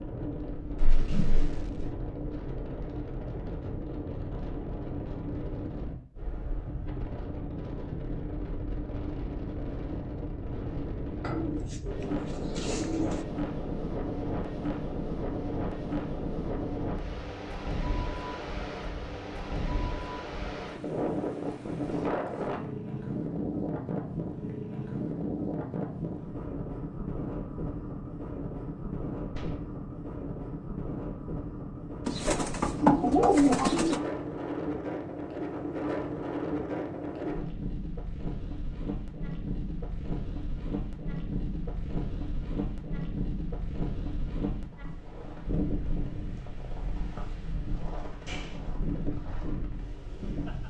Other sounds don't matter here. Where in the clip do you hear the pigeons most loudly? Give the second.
33 s.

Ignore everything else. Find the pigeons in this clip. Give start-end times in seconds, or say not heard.
11.2-13.2, 32.0-34.0.